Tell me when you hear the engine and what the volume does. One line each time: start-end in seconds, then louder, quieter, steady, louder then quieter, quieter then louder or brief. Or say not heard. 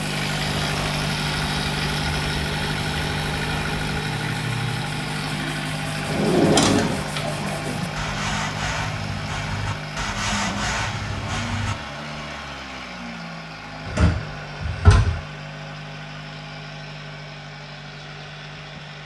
0.0-18.9 quieter.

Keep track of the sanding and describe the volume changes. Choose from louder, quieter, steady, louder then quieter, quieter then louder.
louder.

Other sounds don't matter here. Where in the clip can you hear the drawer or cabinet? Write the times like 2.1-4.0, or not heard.
6.0-7.2, 13.8-15.2.